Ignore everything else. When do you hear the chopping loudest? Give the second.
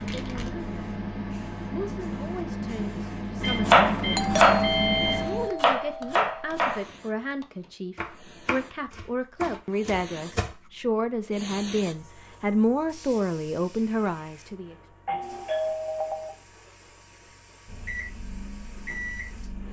4 s.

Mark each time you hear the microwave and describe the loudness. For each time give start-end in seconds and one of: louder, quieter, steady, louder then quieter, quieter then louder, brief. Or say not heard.
0.0-5.5 louder
17.6-19.6 brief.